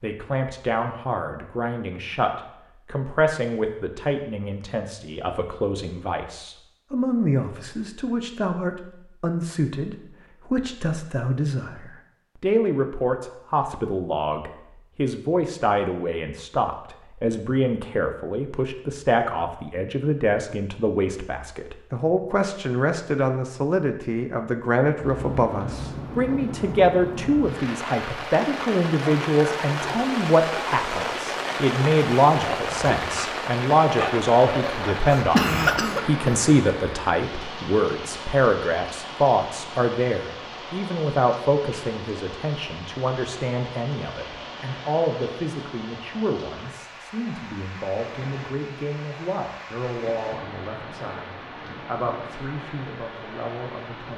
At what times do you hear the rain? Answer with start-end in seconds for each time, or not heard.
24.9-54.1.